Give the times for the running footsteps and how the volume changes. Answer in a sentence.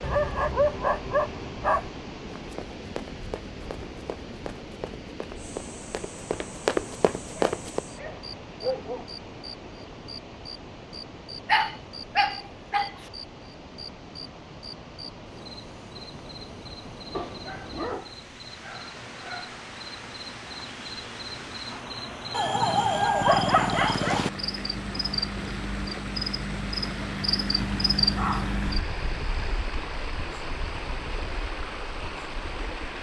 The running footsteps can be heard from 2.4 to 7.8 s, getting louder.